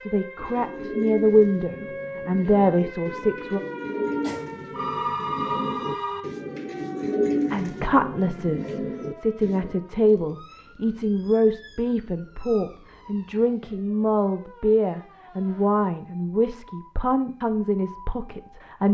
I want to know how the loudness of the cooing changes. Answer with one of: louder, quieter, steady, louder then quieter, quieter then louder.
louder then quieter.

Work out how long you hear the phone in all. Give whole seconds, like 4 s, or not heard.
2 s.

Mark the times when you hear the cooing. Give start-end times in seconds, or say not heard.
0.3-9.8.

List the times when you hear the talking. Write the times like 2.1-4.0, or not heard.
0.0-3.6, 7.5-18.8.